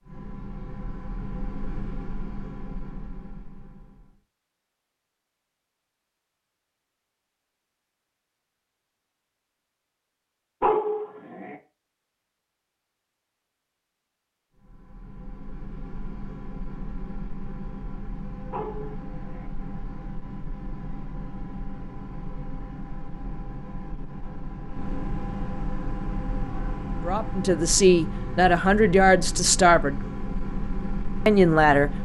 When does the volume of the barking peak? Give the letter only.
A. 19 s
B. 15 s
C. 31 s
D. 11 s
D.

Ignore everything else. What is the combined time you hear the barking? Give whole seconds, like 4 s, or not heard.
2 s.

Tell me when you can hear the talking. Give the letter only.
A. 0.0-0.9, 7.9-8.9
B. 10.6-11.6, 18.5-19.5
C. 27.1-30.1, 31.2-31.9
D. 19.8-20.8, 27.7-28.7
C.